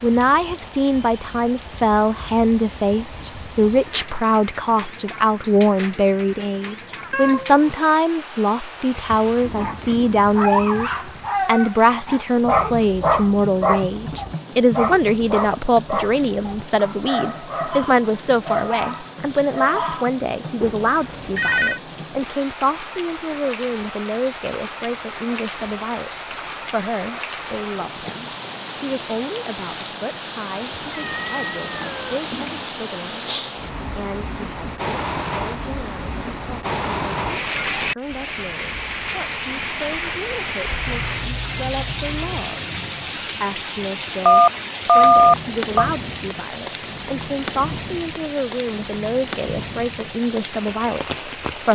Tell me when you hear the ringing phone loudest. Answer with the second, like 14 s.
45 s.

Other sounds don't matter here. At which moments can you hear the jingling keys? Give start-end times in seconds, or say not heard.
not heard.